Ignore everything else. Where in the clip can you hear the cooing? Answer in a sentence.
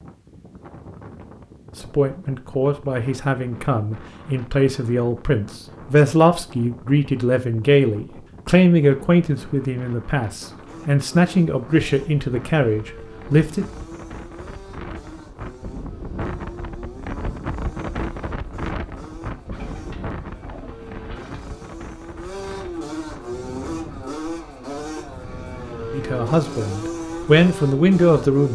You can hear the cooing from 19.5 to 21.5 s.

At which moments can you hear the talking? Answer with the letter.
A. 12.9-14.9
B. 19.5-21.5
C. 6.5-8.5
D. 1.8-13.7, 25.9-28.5
D.